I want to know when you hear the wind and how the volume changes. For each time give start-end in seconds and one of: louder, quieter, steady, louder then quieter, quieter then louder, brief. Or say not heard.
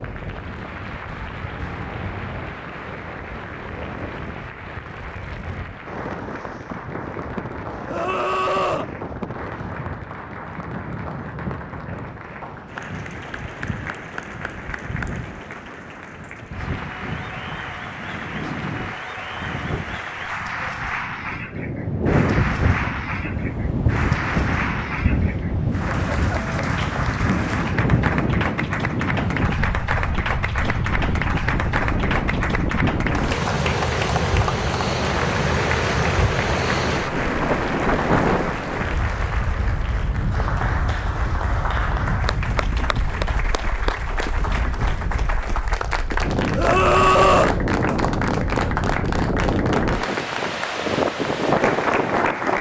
0.0-52.5 louder.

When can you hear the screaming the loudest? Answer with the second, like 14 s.
47 s.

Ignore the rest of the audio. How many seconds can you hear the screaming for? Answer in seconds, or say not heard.
2 s.